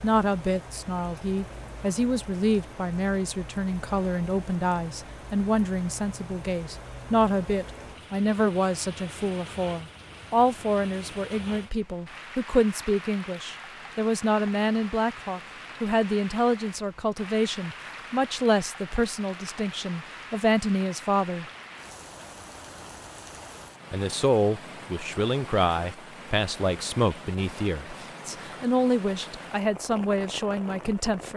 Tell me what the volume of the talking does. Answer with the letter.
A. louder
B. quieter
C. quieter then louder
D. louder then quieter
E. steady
E.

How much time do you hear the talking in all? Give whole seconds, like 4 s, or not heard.
29 s.